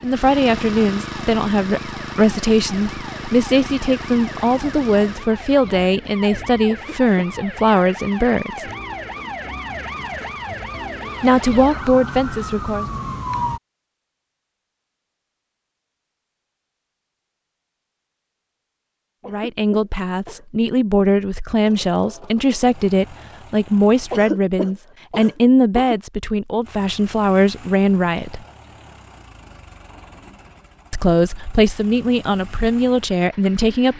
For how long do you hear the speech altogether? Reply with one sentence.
You can hear the speech for 23 seconds altogether.